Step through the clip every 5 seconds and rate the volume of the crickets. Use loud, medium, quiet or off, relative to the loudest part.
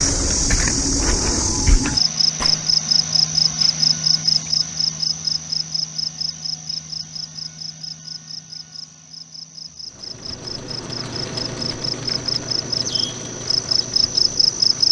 loud, medium, loud.